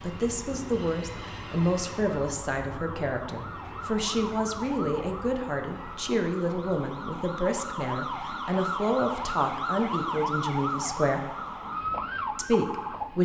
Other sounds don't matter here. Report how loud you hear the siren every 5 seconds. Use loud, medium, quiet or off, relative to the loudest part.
medium, loud, loud.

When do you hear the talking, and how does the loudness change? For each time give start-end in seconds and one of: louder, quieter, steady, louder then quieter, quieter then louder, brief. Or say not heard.
0.0-11.2 steady
12.3-13.1 brief.